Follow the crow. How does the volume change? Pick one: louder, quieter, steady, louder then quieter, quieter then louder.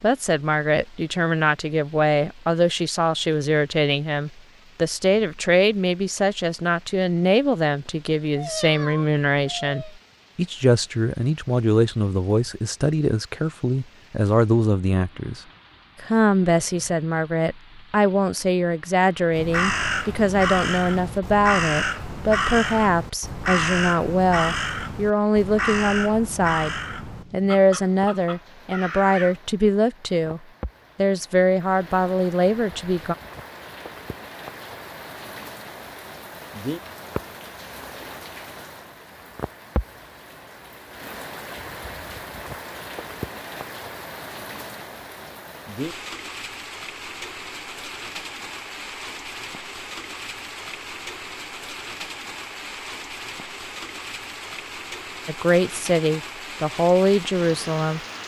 quieter.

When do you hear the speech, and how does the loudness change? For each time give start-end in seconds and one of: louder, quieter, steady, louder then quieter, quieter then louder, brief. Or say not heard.
0.0-15.4 steady
16.0-33.1 steady
55.2-58.0 brief.